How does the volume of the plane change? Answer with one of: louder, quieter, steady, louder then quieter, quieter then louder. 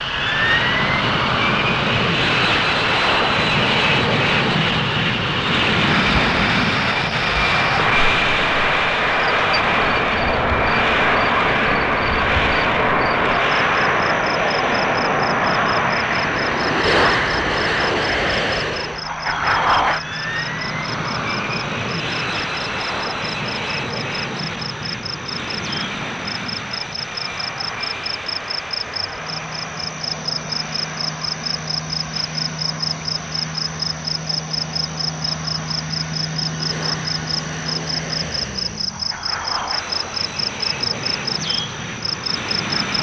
quieter.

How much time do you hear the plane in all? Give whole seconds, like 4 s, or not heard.
43 s.